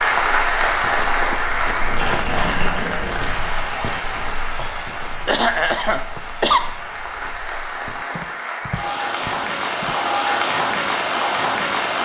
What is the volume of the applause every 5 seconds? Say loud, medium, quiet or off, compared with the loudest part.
loud, medium, loud.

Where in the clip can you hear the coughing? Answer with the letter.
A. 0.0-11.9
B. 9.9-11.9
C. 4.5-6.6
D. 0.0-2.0
C.